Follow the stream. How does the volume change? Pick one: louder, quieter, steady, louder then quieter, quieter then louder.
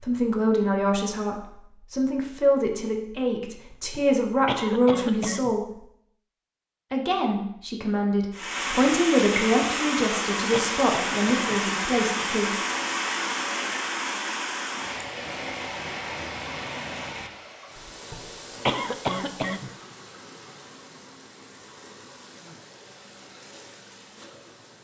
quieter.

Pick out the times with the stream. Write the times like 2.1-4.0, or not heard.
8.3-24.7.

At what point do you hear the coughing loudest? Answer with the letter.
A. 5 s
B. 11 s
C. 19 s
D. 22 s
C.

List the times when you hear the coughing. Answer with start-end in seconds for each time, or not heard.
3.7-5.5, 10.0-11.6, 17.9-19.7.